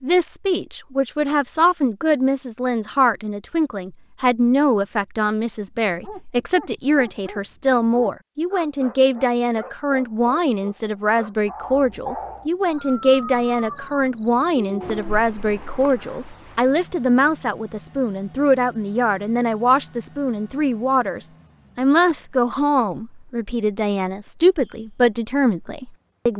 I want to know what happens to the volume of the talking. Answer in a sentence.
The loudness of the talking stays about the same.